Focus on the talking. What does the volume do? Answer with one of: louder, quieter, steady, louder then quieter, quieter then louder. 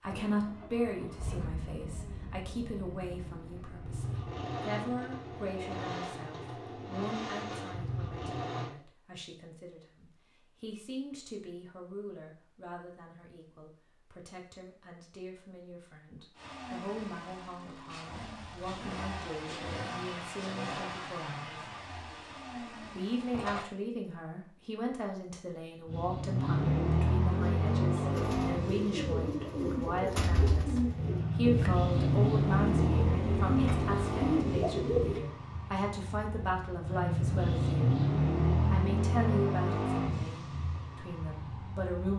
quieter then louder.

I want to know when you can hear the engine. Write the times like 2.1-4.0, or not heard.
0.0-8.8, 16.4-23.7, 25.9-42.1.